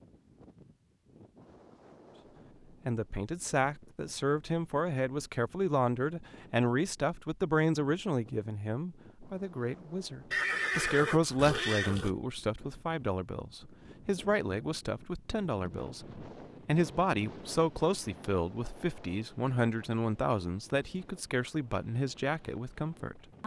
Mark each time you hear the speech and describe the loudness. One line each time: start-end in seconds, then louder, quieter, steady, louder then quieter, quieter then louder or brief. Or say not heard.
2.9-23.4 steady.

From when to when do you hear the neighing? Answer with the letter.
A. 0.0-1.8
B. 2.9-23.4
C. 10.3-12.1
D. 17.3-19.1
C.